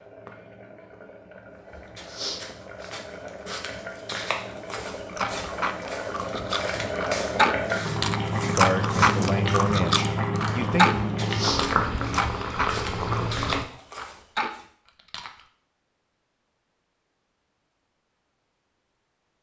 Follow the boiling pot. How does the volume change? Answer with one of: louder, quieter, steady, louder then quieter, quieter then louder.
louder.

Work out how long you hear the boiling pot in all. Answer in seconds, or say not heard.
14 s.